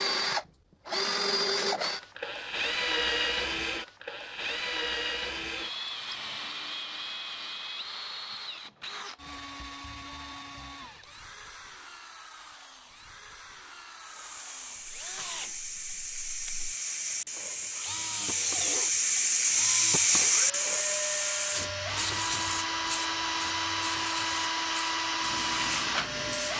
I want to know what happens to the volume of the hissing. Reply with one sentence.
The volume of the hissing goes up, then down.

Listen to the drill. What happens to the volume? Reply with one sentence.
The loudness of the drill goes down, then up.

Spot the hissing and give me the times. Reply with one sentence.
The hissing can be heard from 14.0 to 26.5 s.